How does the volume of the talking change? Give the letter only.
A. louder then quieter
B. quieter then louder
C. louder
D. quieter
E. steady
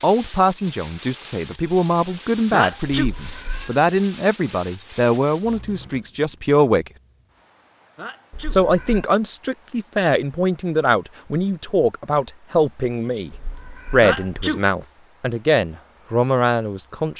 E.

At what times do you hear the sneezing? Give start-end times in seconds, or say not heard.
2.5-3.1, 8.0-8.6, 14.0-14.7.